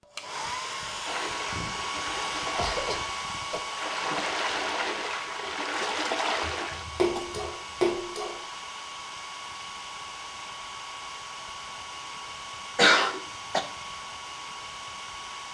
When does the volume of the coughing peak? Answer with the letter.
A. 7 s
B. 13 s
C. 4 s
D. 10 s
B.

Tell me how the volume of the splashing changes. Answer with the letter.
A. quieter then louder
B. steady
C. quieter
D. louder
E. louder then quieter
D.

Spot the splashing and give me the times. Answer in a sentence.
You can hear the splashing from 1.1 to 8.4 s.